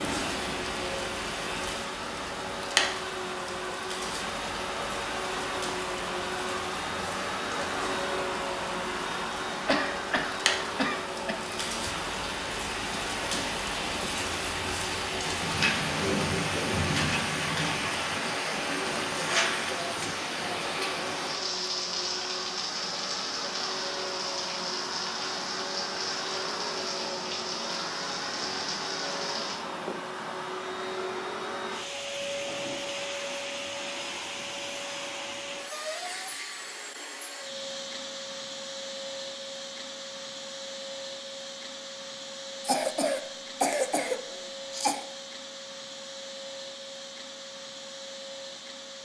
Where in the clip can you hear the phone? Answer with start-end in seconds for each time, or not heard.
not heard.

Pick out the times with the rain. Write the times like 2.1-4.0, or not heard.
0.0-29.6.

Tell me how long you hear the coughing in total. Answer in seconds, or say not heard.
5 s.